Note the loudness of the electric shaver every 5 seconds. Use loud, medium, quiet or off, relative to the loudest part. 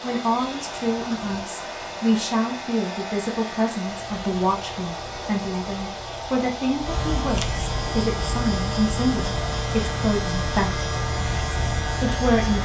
quiet, loud, loud.